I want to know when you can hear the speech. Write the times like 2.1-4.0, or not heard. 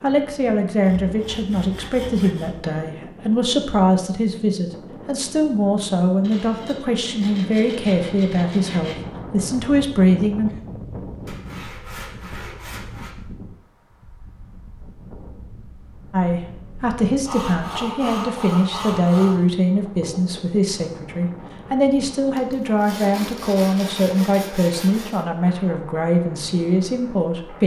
0.0-10.5, 16.1-27.6.